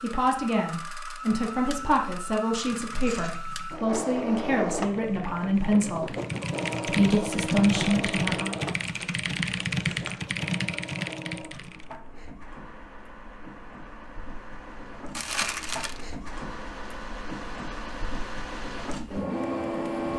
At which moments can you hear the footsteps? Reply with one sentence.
You can't hear the footsteps here.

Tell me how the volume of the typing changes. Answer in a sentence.
The loudness of the typing goes up.